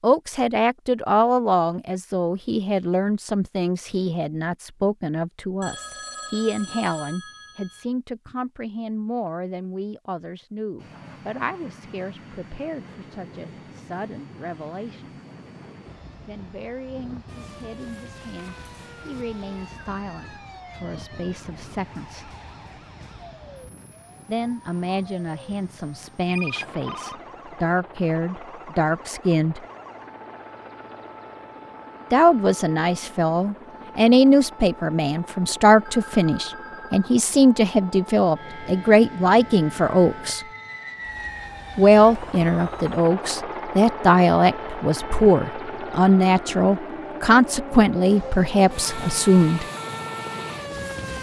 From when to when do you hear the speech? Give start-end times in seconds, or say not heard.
0.0-15.2, 16.2-22.3, 24.2-29.6, 32.1-40.4, 41.8-49.6.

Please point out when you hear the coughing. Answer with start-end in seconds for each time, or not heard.
not heard.